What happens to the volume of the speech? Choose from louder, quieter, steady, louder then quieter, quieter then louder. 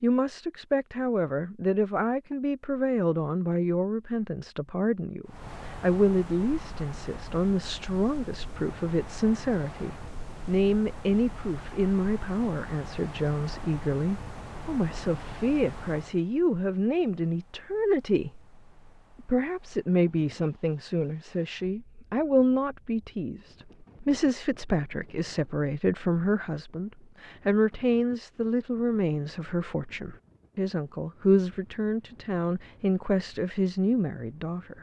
steady.